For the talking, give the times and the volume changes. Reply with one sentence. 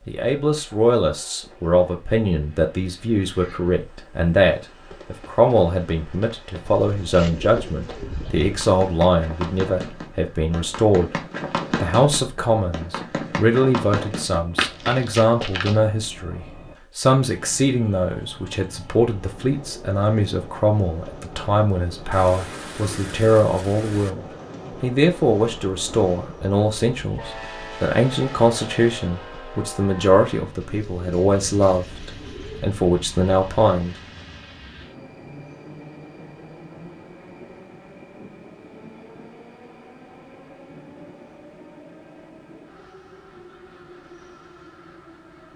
The talking can be heard from 0.1 to 11.2 s, at a steady volume; and from 11.8 to 34.0 s, at a steady volume.